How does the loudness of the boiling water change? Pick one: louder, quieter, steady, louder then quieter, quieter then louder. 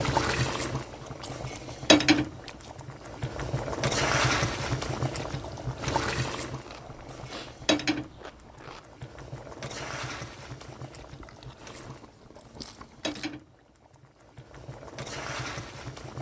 quieter.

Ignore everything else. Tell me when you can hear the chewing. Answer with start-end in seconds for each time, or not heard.
1.0-2.8, 6.6-8.8, 11.0-13.3.